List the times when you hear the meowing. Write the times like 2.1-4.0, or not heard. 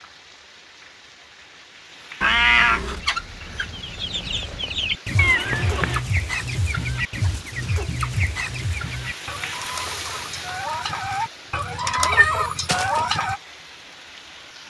2.2-3.0, 5.2-6.0, 12.1-13.1.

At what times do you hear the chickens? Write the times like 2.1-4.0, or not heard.
2.9-13.4.